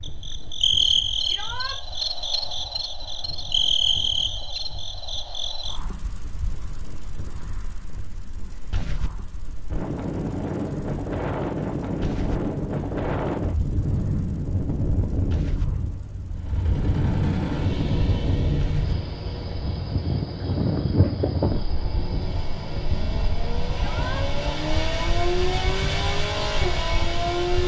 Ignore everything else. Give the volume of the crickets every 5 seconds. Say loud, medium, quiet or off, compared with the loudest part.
loud, quiet, quiet, quiet, quiet, quiet.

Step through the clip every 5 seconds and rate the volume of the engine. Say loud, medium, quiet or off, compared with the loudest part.
off, off, off, medium, medium, loud.